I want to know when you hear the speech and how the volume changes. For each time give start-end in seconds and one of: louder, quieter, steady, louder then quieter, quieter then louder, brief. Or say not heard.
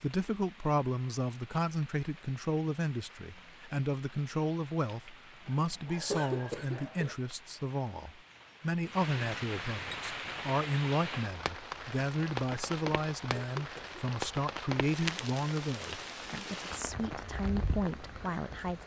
0.0-18.8 steady.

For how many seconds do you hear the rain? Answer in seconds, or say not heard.
19 s.